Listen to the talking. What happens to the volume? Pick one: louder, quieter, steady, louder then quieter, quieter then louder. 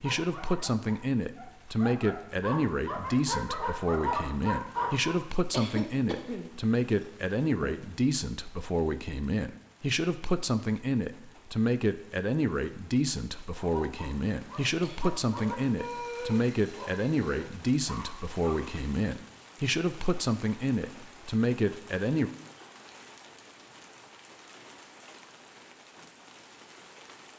steady.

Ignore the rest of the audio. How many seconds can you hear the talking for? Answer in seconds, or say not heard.
22 s.